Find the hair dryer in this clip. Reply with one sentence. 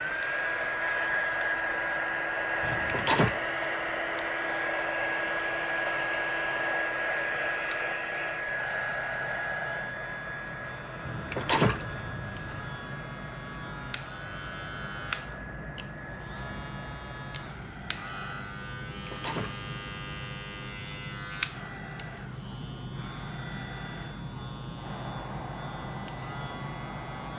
The hair dryer can be heard from 0.0 to 18.6 s and from 21.4 to 27.3 s.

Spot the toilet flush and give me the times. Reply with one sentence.
The toilet flush can be heard from 2.6 to 3.4 s, from 11.1 to 12.7 s and from 18.9 to 20.7 s.